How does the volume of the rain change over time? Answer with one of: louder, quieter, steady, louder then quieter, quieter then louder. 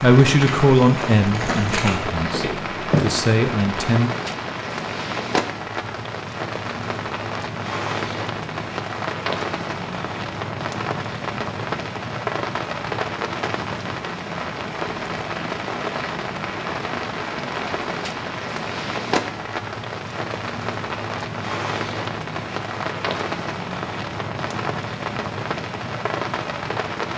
steady.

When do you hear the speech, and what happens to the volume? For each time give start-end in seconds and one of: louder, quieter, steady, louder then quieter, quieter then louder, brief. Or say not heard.
0.0-4.1 quieter then louder.